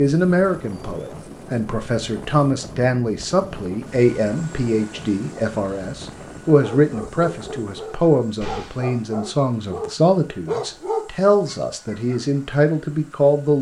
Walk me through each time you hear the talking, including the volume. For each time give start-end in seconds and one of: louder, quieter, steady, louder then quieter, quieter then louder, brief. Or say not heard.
0.0-13.5 steady.